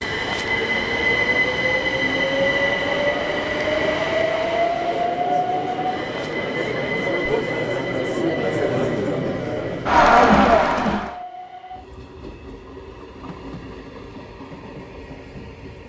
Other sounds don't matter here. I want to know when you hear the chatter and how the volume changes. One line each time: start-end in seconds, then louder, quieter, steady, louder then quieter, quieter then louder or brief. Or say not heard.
0.0-11.2 louder.